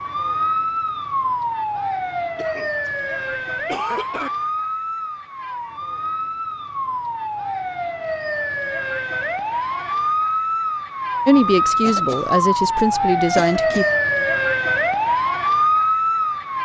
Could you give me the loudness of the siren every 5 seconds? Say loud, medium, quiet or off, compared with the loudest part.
medium, medium, loud, loud.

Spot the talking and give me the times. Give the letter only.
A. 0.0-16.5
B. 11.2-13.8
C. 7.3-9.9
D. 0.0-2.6
B.